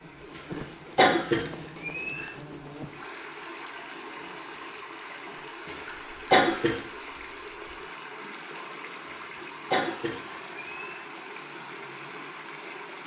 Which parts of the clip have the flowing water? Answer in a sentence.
The flowing water can be heard from 0.0 to 13.0 s.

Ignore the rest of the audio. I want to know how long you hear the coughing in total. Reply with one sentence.
You can hear the coughing for 4 seconds altogether.